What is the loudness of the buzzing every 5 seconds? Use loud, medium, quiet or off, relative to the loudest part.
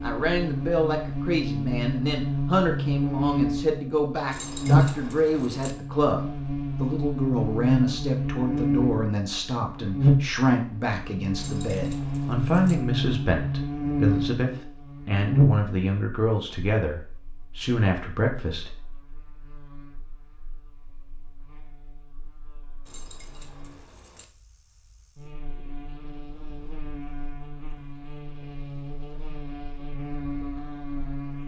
loud, loud, loud, loud, quiet, quiet, medium.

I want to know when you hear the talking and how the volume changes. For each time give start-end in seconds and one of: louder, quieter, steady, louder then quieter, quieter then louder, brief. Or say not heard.
0.0-18.7 steady.